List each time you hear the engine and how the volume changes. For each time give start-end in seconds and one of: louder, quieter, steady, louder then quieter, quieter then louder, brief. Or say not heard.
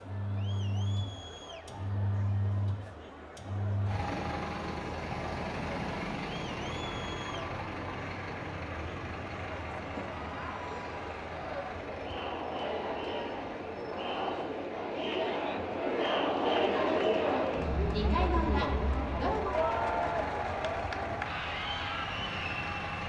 0.0-23.0 quieter then louder.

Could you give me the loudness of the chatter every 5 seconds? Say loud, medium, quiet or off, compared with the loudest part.
quiet, quiet, medium, loud, medium.